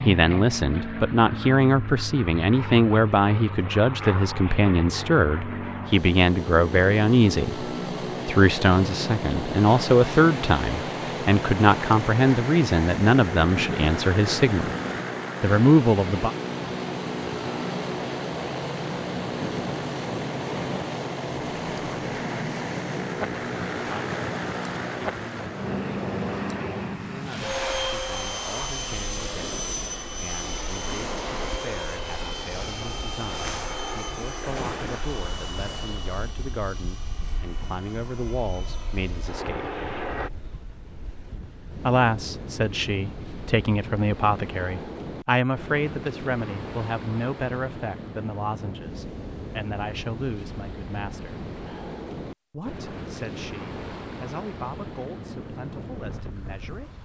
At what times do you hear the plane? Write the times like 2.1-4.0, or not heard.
0.0-40.3.